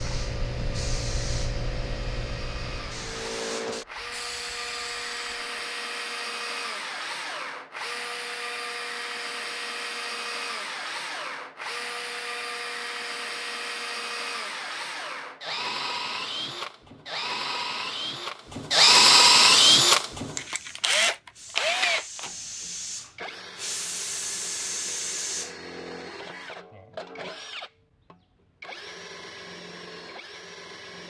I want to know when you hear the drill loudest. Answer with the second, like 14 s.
19 s.